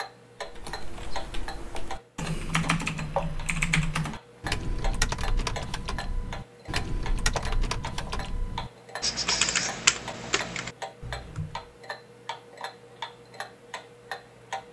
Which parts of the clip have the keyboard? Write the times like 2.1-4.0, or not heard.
0.4-11.6.